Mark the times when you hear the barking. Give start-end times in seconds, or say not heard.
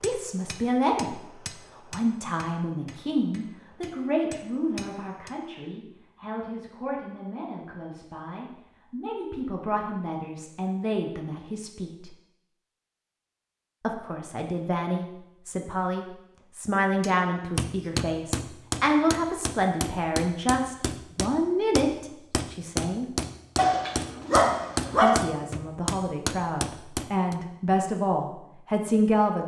23.6-25.1.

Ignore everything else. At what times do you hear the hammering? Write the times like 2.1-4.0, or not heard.
0.0-5.3, 17.0-27.4.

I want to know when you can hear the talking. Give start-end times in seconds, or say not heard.
0.0-1.1, 1.8-12.1, 13.8-23.1, 25.0-29.4.